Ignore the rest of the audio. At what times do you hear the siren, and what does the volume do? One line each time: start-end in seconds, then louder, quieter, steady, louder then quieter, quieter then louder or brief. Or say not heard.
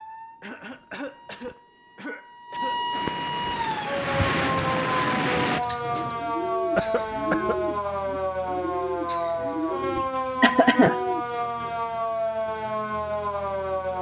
0.0-13.9 louder.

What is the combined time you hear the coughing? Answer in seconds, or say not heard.
4 s.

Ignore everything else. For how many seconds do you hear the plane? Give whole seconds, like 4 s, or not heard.
3 s.